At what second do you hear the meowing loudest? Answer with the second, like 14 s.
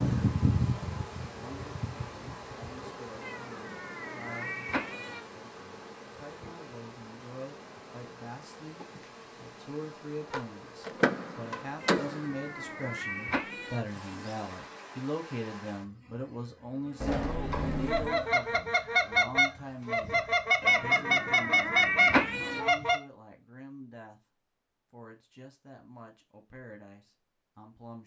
22 s.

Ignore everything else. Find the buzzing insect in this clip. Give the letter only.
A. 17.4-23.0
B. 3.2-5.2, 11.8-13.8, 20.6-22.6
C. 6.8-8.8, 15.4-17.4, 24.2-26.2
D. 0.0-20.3
D.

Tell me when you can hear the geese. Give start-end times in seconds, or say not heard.
17.4-23.0.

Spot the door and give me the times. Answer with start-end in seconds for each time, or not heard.
10.8-12.2, 17.0-18.2.